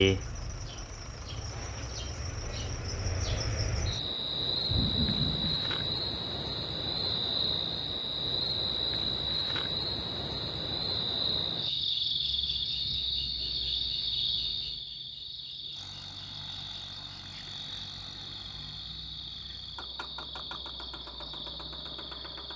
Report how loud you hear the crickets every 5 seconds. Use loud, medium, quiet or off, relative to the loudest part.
loud, loud, loud, medium, medium.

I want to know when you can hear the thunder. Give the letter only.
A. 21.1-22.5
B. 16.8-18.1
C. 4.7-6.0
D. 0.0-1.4
C.